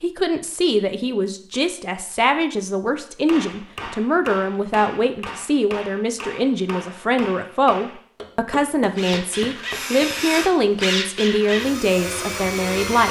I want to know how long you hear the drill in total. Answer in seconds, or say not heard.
4 s.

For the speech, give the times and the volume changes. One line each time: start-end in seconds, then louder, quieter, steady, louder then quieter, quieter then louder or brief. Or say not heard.
0.0-13.0 steady.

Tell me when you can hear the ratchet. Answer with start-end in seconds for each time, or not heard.
not heard.